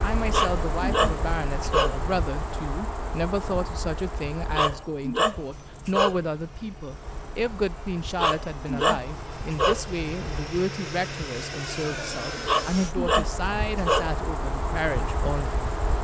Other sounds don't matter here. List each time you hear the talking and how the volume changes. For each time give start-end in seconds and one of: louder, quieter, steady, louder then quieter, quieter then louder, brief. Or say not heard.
0.0-15.7 steady.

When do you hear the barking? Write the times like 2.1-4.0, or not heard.
0.3-2.0, 4.5-6.2, 8.2-9.8, 12.4-14.2.